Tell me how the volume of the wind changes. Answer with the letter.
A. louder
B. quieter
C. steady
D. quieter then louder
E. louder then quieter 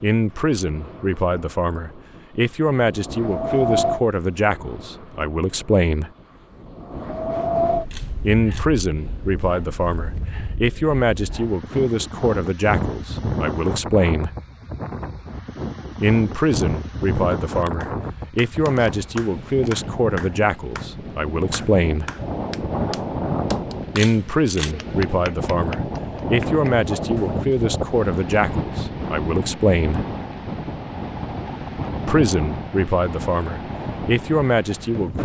C.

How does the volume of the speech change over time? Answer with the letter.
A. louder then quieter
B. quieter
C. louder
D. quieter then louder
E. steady
E.